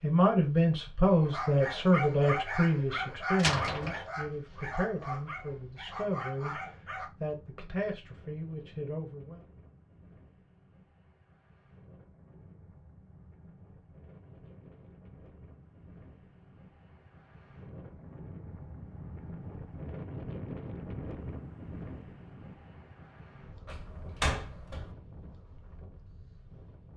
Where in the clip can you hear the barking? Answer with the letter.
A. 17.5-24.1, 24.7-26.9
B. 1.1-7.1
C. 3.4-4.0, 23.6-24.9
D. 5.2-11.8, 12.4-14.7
B.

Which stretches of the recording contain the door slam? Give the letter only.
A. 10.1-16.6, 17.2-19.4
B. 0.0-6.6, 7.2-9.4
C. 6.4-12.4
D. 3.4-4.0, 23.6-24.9
D.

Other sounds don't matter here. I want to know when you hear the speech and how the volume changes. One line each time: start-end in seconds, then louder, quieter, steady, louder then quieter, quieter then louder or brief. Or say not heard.
0.0-6.6 quieter
7.2-9.4 brief.